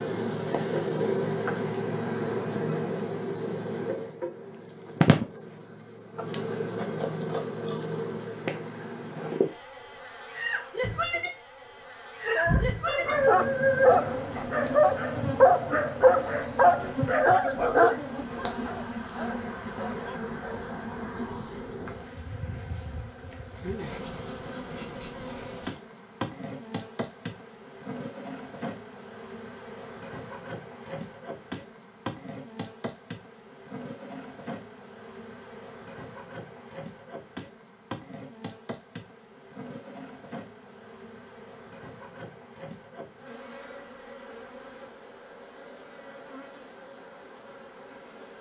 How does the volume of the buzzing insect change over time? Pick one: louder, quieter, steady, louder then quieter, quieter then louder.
quieter.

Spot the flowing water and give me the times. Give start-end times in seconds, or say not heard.
not heard.